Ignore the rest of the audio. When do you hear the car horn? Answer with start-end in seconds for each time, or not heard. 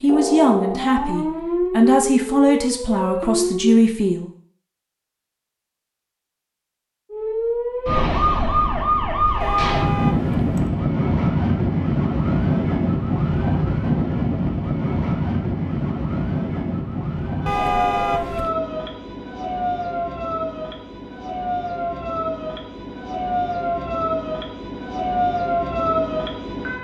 9.4-10.7, 17.4-18.6.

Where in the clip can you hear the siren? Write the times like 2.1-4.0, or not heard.
0.0-3.8, 7.1-26.7.